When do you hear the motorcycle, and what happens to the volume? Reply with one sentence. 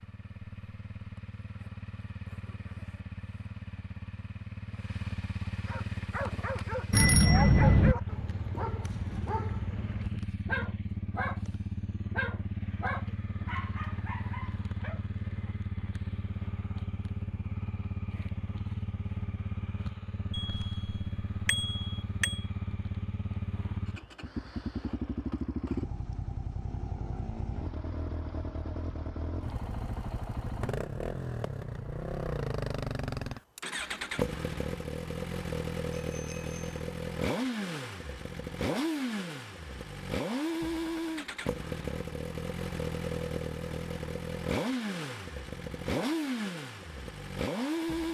You can hear the motorcycle from 0.0 to 48.0 s, getting louder.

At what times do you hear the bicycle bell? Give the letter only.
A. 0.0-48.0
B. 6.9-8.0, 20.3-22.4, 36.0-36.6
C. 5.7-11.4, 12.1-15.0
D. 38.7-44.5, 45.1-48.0
B.